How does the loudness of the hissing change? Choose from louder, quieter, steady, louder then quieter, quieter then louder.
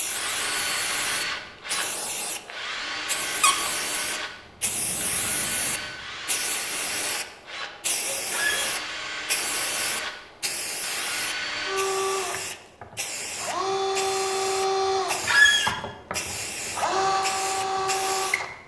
steady.